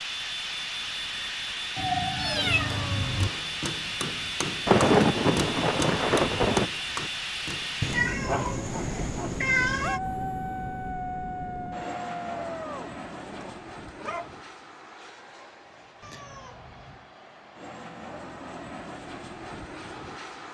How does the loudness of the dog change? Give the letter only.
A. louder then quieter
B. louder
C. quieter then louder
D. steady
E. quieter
A.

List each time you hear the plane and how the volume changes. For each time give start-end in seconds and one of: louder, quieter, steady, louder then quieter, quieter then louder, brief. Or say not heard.
0.0-20.4 quieter.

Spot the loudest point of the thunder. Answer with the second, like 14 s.
5 s.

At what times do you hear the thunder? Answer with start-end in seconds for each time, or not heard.
4.7-6.7.